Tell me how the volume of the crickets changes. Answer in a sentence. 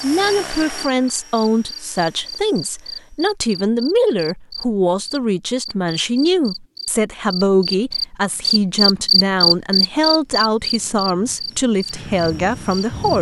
The volume of the crickets goes up, then down.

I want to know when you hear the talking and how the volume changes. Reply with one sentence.
You can hear the talking from 0.0 to 13.1 s, at a steady volume.